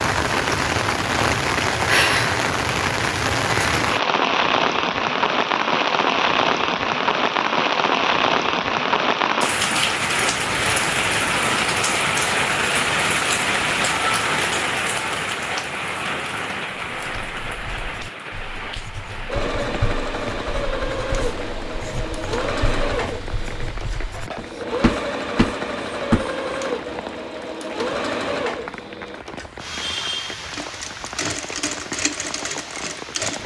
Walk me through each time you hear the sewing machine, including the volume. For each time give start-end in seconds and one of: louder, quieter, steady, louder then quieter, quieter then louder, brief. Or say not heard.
19.2-33.4 steady.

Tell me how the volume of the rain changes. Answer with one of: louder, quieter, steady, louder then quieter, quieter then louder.
quieter.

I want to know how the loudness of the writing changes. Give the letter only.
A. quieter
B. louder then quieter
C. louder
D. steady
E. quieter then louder
C.